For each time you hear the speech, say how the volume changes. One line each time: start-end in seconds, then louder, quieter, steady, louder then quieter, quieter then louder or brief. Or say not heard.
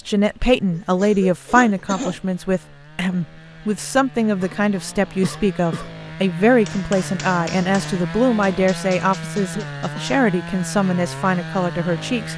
0.1-12.3 steady.